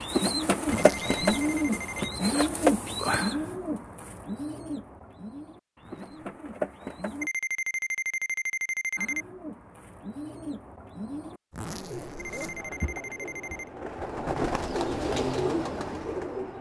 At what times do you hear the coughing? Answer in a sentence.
You can't hear the coughing here.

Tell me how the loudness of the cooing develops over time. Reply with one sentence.
The loudness of the cooing goes down, then up.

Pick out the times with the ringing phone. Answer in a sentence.
The ringing phone can be heard from 0.8 to 2.1 s, from 7.2 to 9.2 s and from 12.2 to 13.7 s.